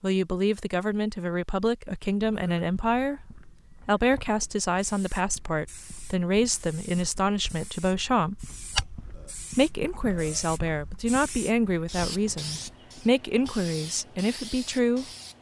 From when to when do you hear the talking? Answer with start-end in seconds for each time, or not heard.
0.0-8.4, 9.6-15.1.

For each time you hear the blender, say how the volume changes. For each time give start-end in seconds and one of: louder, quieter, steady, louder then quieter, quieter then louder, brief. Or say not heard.
not heard.